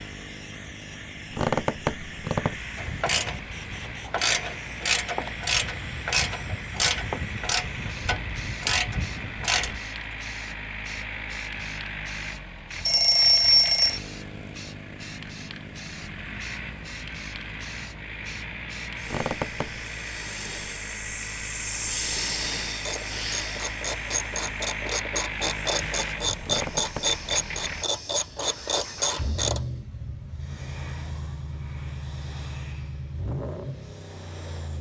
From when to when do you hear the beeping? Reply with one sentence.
You can hear the beeping from 12.8 to 14.0 s.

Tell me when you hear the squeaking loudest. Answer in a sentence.
The volume of the squeaking peaks at 2 seconds.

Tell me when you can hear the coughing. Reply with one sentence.
You can't hear the coughing here.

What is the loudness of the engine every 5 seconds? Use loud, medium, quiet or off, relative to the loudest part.
medium, loud, loud, loud, loud, loud, loud.